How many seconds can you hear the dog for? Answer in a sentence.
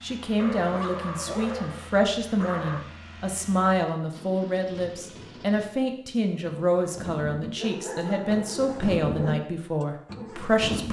You can hear the dog for 4 seconds altogether.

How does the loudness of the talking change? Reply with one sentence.
The volume of the talking stays about the same.